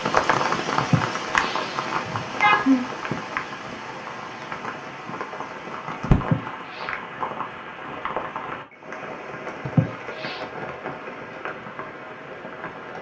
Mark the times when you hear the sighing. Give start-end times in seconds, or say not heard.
0.8-2.9, 6.2-6.9, 9.7-10.4.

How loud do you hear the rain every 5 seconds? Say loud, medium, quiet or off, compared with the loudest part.
loud, loud, medium.